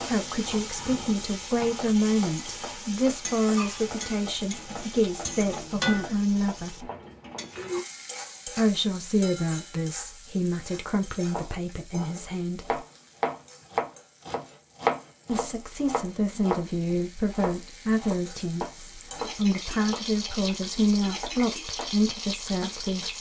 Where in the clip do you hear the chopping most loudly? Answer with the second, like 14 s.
15 s.